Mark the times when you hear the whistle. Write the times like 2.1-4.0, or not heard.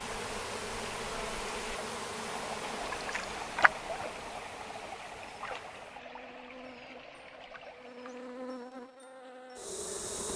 not heard.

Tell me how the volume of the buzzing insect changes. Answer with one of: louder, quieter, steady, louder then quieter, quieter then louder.
quieter then louder.